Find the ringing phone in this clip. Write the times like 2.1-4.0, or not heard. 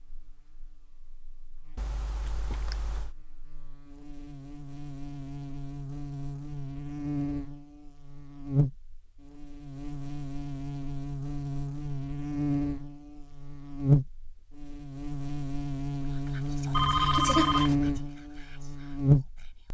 1.8-3.1, 16.7-17.8.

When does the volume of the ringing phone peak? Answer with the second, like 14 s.
17 s.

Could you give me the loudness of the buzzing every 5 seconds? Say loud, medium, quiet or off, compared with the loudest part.
quiet, medium, loud, loud.